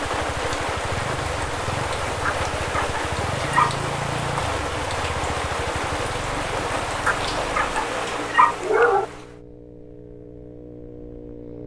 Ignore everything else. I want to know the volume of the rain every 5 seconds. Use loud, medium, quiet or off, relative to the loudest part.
loud, loud, off.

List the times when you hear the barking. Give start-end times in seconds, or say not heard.
2.2-3.9, 7.0-9.1.